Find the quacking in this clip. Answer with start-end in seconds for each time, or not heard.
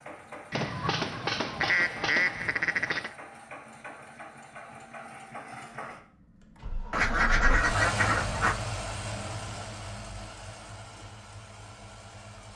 0.5-3.1, 6.9-8.6.